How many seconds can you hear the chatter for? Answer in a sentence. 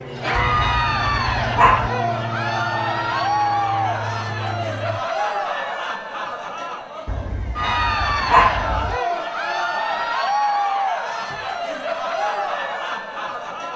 The chatter can be heard for 14 seconds in total.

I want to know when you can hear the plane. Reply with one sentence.
The plane can be heard from 0.0 to 5.0 s.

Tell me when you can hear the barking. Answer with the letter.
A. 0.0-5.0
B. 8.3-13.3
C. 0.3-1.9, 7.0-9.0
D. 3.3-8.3
C.